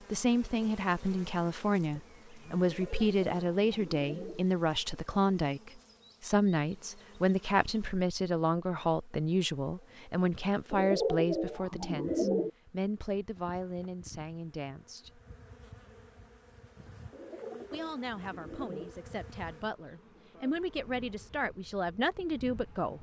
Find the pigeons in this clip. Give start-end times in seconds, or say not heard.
2.6-4.5, 10.7-12.5, 17.1-18.9.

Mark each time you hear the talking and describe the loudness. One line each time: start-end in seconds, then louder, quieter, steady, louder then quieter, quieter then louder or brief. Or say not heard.
0.1-15.2 quieter
17.7-22.9 louder.